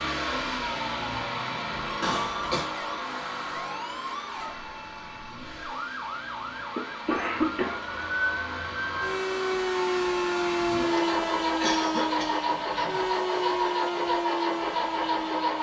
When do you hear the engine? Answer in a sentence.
The engine can be heard from 0.0 to 15.5 s.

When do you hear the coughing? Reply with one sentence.
The coughing can be heard from 2.0 to 2.7 s, from 6.8 to 8.0 s and from 11.4 to 13.0 s.